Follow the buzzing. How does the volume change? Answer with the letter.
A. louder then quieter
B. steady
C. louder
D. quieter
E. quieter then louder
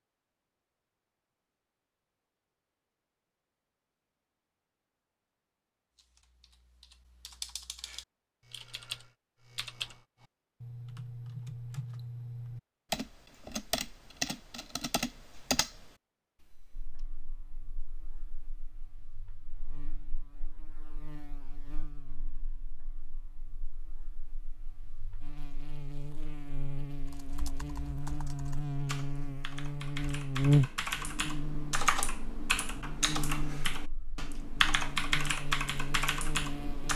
A.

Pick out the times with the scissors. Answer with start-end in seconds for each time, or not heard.
not heard.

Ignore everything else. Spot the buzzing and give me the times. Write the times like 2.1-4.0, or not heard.
16.7-36.9.